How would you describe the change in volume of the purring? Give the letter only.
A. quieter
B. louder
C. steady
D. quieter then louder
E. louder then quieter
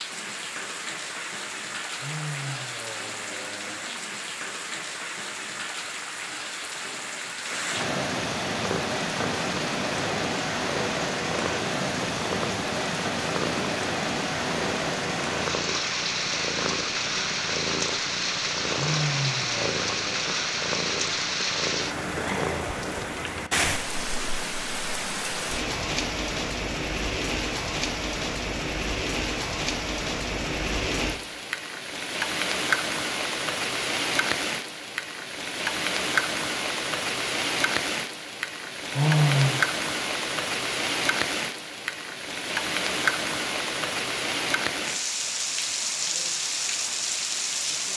C.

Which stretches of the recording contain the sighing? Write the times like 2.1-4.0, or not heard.
2.0-4.0, 18.8-20.2, 38.9-39.6.